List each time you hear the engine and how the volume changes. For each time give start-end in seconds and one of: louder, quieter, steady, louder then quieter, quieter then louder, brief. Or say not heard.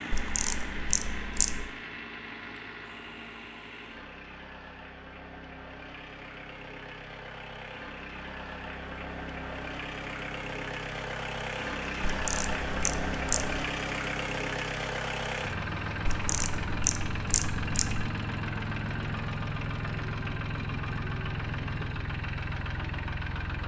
0.0-23.6 louder.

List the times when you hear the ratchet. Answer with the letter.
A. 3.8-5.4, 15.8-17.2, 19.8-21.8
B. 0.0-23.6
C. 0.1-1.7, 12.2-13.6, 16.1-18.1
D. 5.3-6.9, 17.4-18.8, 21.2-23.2
C.